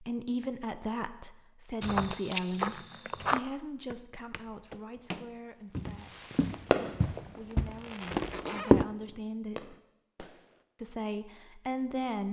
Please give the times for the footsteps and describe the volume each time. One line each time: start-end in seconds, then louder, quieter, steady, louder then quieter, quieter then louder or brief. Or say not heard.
1.8-8.8 quieter then louder.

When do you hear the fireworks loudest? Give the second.
7 s.